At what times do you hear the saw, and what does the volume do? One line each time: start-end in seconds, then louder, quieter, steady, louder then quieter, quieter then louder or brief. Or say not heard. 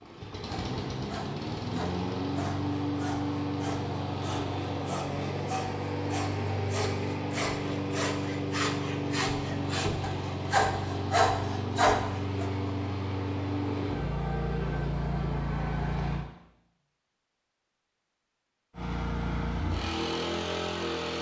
0.5-12.5 louder.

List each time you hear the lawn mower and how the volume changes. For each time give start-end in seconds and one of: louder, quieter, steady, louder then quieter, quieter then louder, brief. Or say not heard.
0.0-16.2 steady
18.7-21.1 brief.